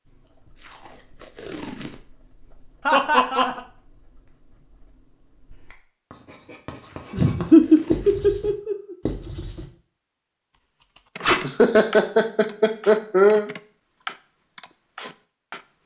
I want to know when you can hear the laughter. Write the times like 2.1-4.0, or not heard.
2.9-3.6, 7.1-8.9, 11.4-13.5.